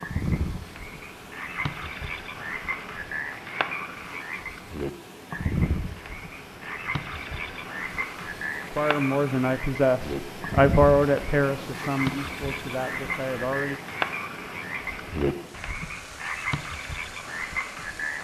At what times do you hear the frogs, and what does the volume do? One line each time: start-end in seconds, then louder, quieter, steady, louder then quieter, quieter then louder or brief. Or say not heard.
0.0-18.1 steady.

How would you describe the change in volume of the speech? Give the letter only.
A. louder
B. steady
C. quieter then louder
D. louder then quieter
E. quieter
E.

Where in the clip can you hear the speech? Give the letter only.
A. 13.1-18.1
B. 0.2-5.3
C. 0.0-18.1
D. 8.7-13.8
D.